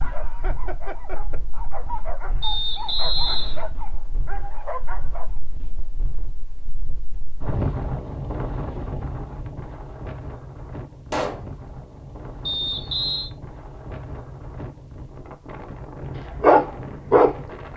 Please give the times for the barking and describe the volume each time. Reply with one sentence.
You can hear the barking from 0.0 to 5.3 s, at a steady volume; and briefly from 16.1 to 17.7 s.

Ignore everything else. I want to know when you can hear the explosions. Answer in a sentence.
The explosions can be heard from 11.1 to 11.5 s.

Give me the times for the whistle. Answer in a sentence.
The whistle can be heard from 2.4 to 3.6 s and from 12.4 to 13.3 s.